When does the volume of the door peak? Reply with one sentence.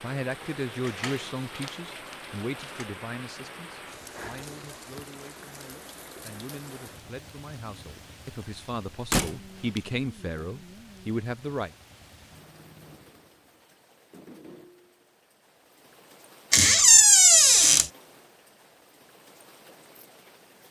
The loudest moment of the door is at 17 seconds.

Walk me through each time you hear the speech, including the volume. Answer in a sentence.
The speech can be heard from 0.0 to 11.7 s, getting quieter then louder.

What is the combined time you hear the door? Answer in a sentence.
The door can be heard for 4 seconds in total.